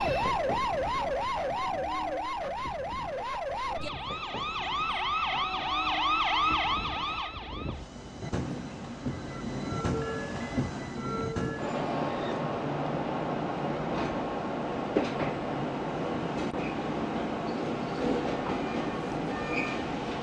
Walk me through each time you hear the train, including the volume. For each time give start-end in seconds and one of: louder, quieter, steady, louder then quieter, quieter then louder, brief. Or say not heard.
0.0-20.1 louder.